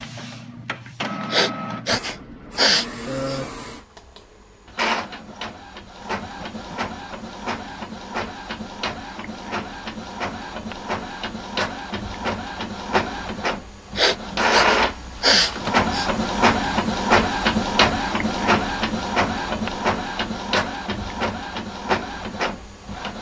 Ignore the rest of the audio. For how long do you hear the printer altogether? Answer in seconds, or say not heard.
23 s.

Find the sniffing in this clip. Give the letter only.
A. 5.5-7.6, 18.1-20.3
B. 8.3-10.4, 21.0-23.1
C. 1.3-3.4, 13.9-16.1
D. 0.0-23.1
C.